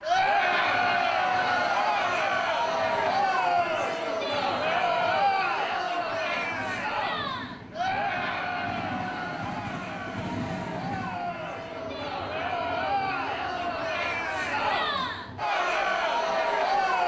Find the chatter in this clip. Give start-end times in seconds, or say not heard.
0.0-17.0.